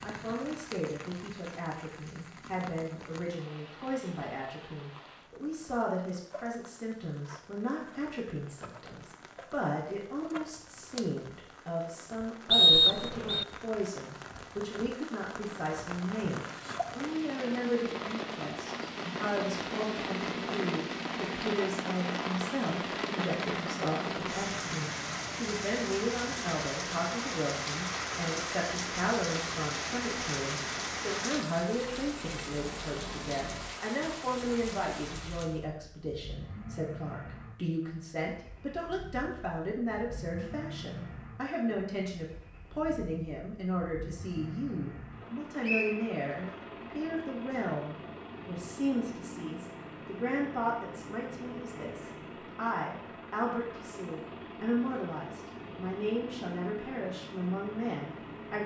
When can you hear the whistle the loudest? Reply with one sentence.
The volume of the whistle peaks at 13 seconds.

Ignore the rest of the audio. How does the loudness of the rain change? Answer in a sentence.
The volume of the rain goes up.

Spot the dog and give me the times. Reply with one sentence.
You can't hear the dog here.